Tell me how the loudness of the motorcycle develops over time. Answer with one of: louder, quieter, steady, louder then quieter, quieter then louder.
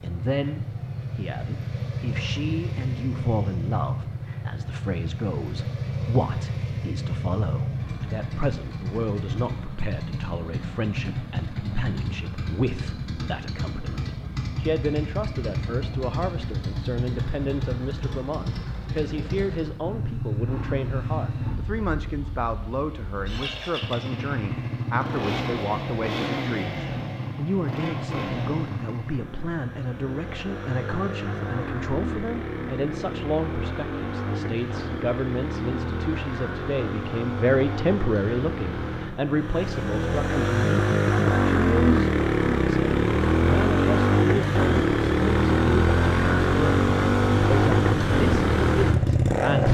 louder.